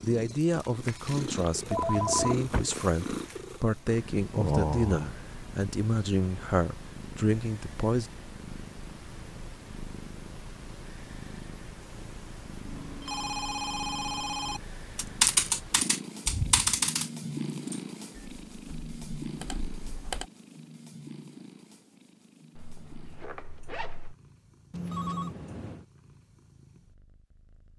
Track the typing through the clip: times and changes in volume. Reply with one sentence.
You can hear the typing from 14.9 to 20.2 s, getting quieter then louder.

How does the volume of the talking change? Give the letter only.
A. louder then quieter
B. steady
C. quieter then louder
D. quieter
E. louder
B.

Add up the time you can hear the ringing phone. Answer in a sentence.
You can hear the ringing phone for 4 seconds altogether.